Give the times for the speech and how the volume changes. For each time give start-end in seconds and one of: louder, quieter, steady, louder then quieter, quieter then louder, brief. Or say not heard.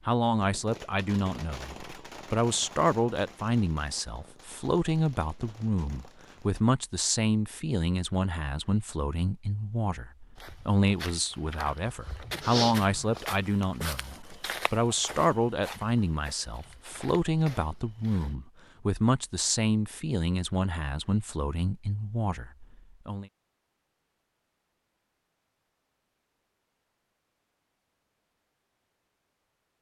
0.1-23.2 steady.